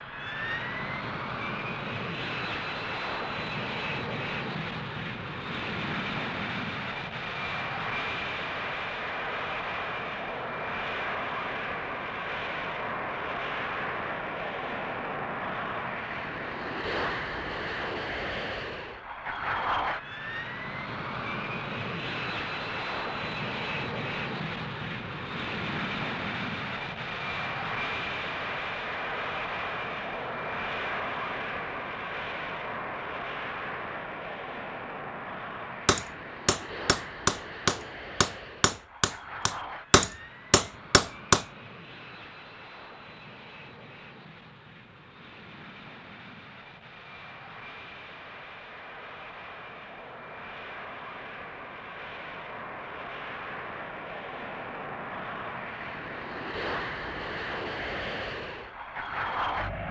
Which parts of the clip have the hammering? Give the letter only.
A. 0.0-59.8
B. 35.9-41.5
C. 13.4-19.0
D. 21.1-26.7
B.